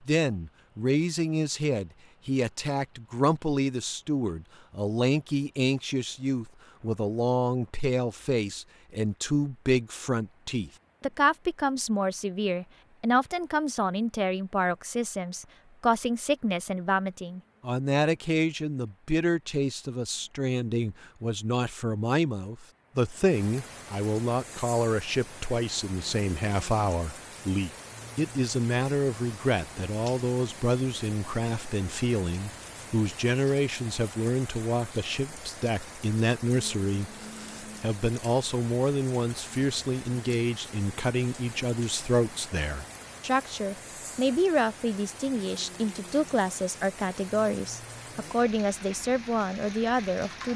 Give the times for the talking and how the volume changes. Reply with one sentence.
The talking can be heard from 0.1 to 50.5 s, at a steady volume.